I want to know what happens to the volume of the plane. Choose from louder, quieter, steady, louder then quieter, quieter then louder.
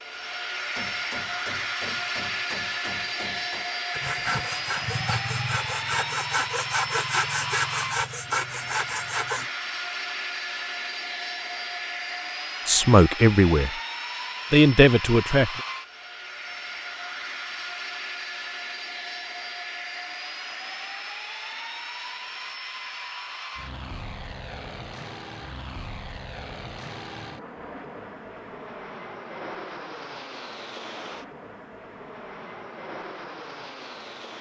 quieter.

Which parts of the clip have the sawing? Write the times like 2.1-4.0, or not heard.
3.9-9.4.